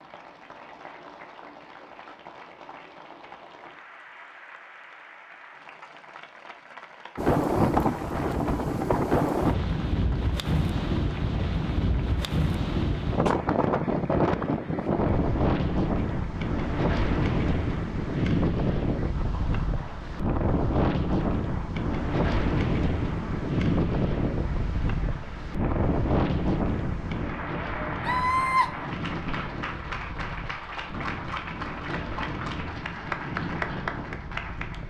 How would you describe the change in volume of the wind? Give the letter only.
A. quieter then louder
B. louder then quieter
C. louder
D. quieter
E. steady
D.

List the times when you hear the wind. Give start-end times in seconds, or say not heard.
7.2-34.8.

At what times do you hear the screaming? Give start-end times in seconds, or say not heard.
28.0-28.7.